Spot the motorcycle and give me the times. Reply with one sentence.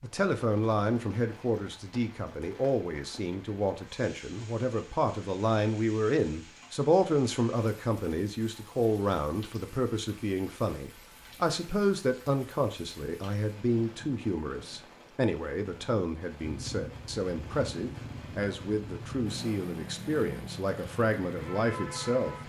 You can hear the motorcycle from 16.4 to 22.4 s.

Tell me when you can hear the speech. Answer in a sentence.
The speech can be heard from 0.0 to 22.4 s.